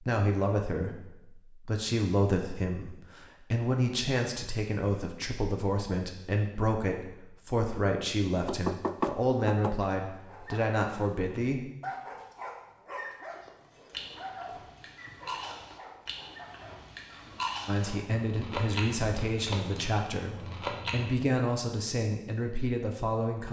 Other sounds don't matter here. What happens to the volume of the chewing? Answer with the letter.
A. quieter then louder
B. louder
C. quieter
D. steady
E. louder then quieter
B.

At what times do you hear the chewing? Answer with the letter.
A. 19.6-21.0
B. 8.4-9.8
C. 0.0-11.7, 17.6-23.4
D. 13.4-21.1
D.